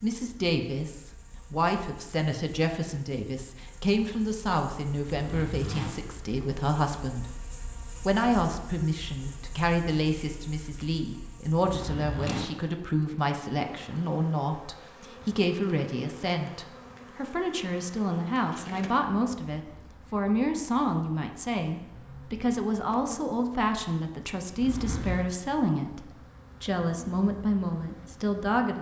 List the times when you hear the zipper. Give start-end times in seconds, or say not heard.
5.0-6.3, 11.6-12.6, 24.6-25.2.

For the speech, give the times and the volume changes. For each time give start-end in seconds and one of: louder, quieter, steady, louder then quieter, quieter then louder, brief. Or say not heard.
0.0-7.3 steady
8.0-28.7 steady.